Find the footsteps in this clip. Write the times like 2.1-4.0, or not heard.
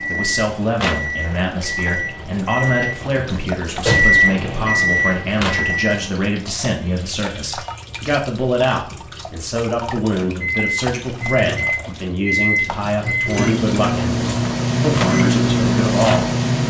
not heard.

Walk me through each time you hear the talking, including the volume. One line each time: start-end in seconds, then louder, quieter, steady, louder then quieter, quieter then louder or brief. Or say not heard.
0.0-16.3 steady.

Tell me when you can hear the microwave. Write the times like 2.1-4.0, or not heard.
0.0-6.3, 10.4-16.6.